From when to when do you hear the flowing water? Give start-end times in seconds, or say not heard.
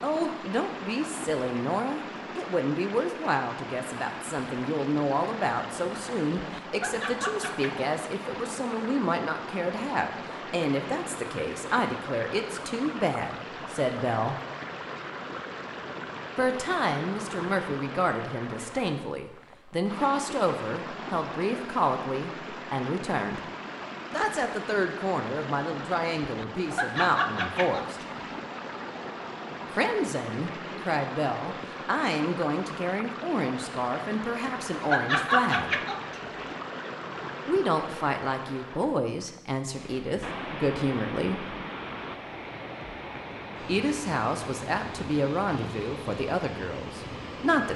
0.0-47.7.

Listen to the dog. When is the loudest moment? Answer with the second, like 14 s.
35 s.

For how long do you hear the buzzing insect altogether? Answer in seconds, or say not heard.
not heard.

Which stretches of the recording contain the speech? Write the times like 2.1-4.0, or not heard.
0.0-14.3, 16.4-23.4, 24.1-27.9, 29.7-35.8, 37.5-41.5, 43.6-47.7.